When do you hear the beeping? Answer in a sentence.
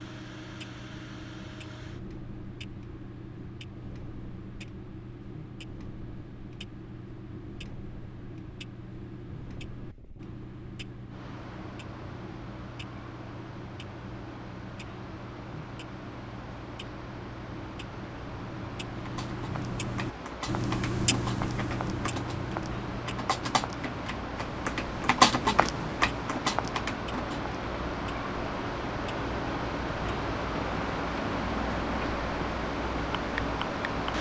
The beeping can't be heard in this clip.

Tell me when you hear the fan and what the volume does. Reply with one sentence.
The fan can be heard from 0.0 to 34.1 s, getting louder.